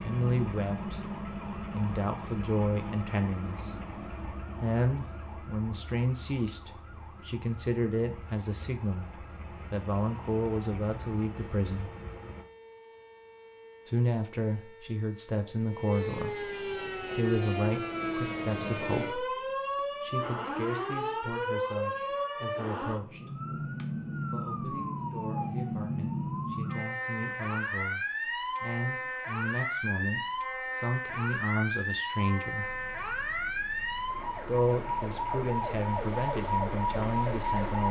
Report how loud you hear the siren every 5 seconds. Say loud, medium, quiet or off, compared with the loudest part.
quiet, quiet, quiet, loud, loud, loud, loud, loud.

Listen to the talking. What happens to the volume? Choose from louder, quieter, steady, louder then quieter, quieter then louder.
quieter then louder.